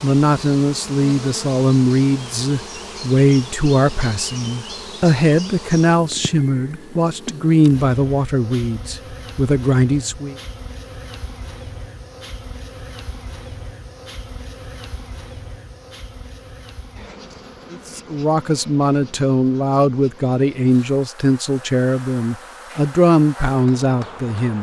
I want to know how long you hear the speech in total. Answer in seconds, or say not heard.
17 s.